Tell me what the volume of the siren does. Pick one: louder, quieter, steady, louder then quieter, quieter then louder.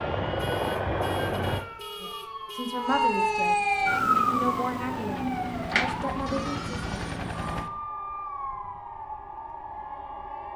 louder then quieter.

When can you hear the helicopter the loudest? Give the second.
1 s.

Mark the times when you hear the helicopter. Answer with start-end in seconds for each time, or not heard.
0.0-1.6, 3.8-7.7.